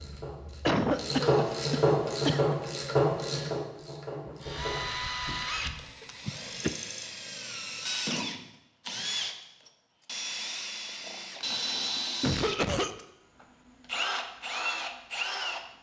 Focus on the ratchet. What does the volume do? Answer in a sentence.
The volume of the ratchet goes up, then down.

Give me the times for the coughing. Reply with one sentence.
You can hear the coughing from 0.7 to 2.5 s, from 6.0 to 6.8 s and from 11.5 to 13.1 s.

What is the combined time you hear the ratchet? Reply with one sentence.
The ratchet can be heard for 5 seconds in total.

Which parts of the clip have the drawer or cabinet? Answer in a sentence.
The drawer or cabinet can't be heard in this clip.